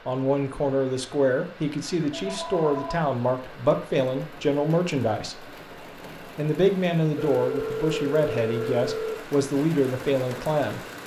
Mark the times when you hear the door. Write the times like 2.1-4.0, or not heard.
not heard.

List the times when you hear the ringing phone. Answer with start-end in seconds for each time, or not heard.
2.1-3.0, 7.2-9.2.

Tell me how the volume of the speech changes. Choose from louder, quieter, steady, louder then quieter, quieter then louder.
steady.